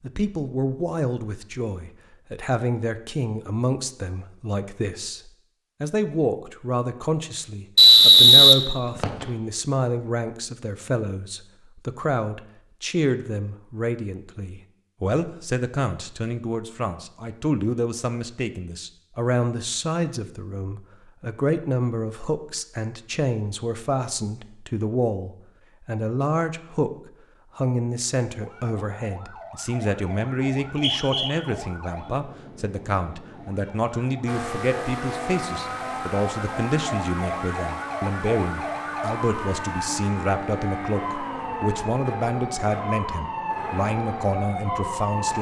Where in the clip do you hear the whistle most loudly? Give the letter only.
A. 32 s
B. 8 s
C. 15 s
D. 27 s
B.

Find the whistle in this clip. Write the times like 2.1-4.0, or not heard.
7.8-9.2, 30.6-31.3.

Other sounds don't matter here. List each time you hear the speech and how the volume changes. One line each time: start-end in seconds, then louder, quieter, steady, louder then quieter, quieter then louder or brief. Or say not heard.
0.0-26.9 steady
27.6-45.3 steady.